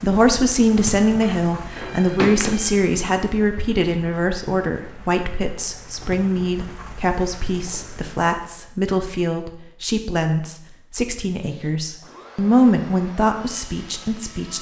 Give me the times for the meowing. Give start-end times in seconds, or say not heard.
1.2-2.8.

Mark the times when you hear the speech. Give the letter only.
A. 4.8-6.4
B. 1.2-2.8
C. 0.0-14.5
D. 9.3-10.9
C.